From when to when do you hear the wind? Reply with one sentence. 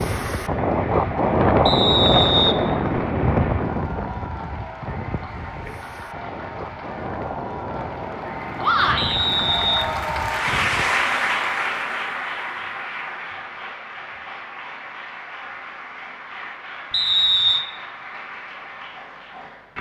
The wind can be heard from 0.0 to 11.1 s.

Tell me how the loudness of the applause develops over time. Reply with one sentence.
The loudness of the applause goes up, then down.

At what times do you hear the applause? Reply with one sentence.
You can hear the applause from 0.0 to 19.7 s.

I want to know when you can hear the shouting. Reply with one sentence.
You can hear the shouting from 8.6 to 9.2 s.